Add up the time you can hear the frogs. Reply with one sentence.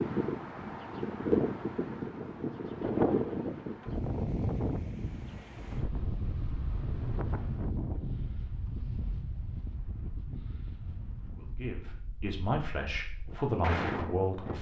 The frogs can't be heard in this clip.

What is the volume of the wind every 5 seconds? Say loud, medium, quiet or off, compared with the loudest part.
loud, medium, medium.